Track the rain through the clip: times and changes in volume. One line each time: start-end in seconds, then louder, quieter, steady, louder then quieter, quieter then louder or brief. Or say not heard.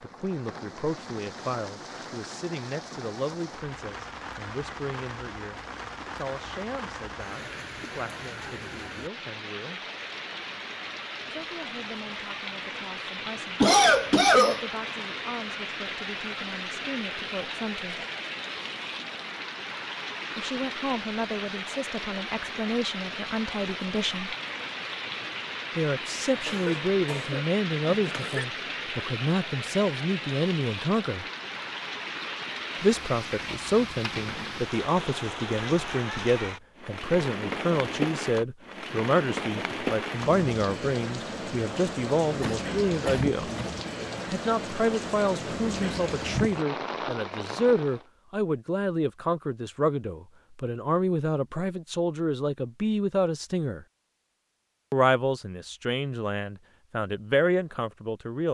0.0-48.0 louder.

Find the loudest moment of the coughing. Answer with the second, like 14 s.
14 s.